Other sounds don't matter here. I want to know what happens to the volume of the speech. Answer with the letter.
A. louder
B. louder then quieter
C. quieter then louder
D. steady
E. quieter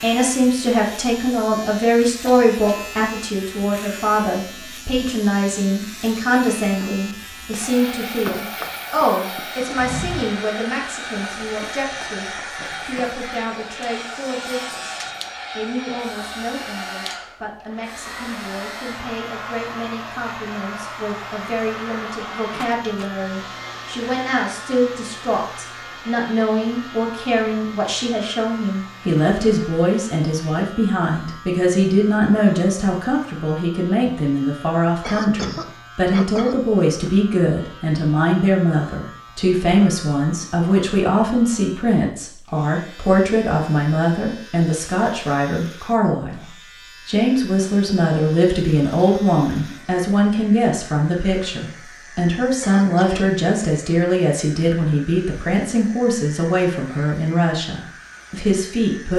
C.